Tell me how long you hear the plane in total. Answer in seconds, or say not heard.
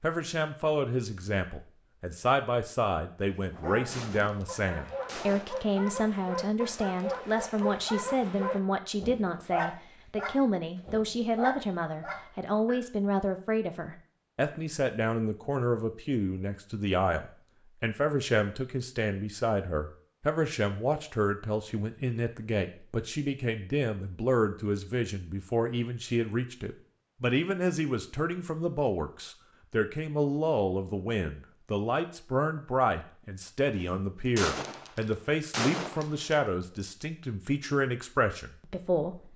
not heard.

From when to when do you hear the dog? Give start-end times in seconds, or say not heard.
3.5-12.8.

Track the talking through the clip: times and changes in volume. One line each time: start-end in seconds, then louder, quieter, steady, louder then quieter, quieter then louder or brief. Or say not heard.
0.0-39.3 steady.